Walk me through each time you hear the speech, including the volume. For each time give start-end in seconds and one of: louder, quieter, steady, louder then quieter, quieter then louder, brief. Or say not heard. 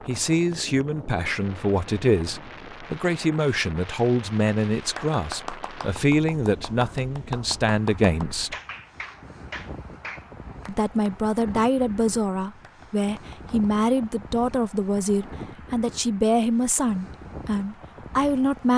0.1-8.6 steady
10.7-18.7 steady.